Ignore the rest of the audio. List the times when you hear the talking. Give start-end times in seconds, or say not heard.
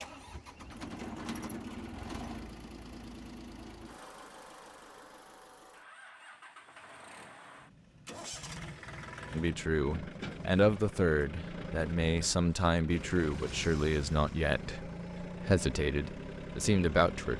9.3-17.3.